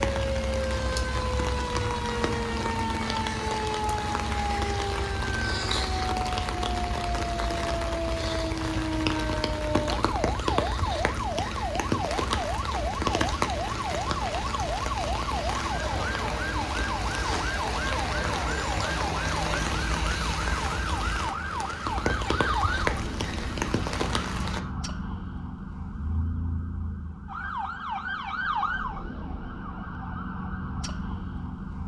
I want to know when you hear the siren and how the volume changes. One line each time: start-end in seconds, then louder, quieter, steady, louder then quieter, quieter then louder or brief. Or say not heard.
0.1-31.8 steady.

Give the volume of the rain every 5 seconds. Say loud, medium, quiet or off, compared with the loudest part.
loud, loud, loud, loud, loud, off, off.